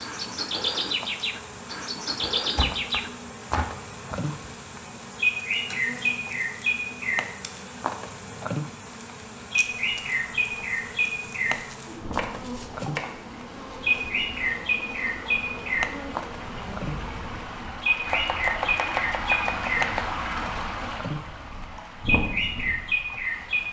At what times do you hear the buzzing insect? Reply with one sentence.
The buzzing insect can be heard from 0.0 to 17.7 s.